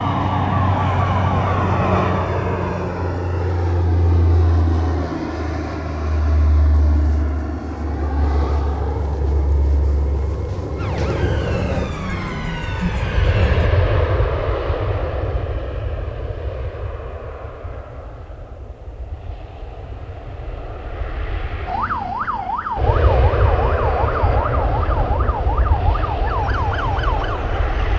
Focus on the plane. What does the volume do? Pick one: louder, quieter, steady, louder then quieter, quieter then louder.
quieter then louder.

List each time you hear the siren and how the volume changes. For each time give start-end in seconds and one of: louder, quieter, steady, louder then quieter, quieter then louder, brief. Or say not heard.
0.0-2.3 brief
10.8-13.7 brief
21.6-27.9 steady.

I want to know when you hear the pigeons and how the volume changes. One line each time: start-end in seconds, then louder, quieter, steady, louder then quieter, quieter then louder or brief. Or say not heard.
not heard.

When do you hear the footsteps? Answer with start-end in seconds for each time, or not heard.
not heard.